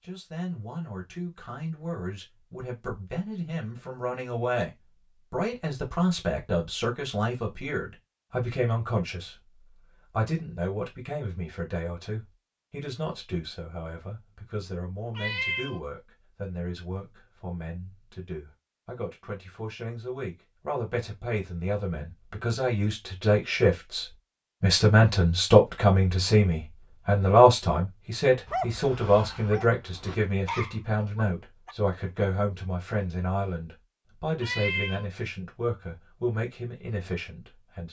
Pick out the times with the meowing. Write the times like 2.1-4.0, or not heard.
15.2-15.8, 34.4-35.0.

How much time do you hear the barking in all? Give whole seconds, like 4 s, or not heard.
3 s.